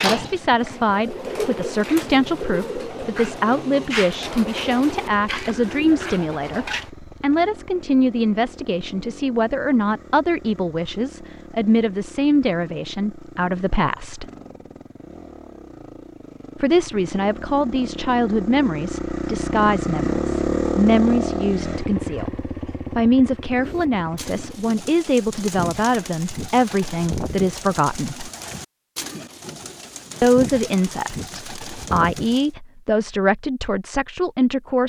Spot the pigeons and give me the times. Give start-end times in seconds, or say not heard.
0.0-6.9, 23.4-32.5.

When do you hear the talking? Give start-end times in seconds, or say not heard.
0.0-14.2, 16.6-28.3, 30.2-34.8.